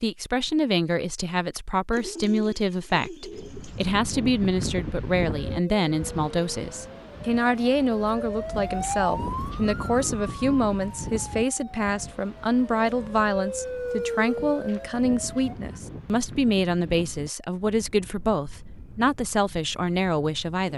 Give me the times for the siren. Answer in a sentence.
The siren can be heard from 5.4 to 15.8 s.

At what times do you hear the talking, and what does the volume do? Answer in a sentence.
You can hear the talking from 0.0 to 20.7 s, at a steady volume.